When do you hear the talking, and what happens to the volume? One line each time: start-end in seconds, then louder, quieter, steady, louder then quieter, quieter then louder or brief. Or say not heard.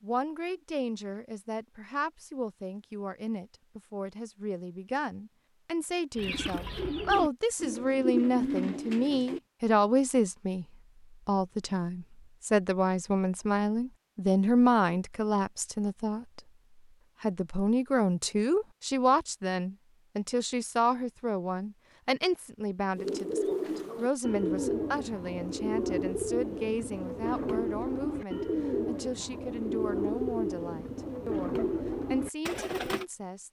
0.0-10.7 louder
11.2-16.4 louder then quieter
17.2-33.4 quieter.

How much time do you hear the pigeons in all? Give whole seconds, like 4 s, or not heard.
13 s.